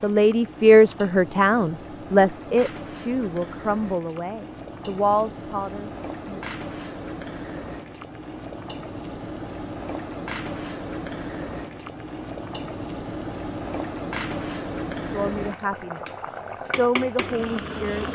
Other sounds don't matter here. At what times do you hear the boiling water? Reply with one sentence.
The boiling water can be heard from 0.0 to 18.1 s.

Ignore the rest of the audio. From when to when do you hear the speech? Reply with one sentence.
You can hear the speech from 0.0 to 6.4 s and from 15.0 to 18.1 s.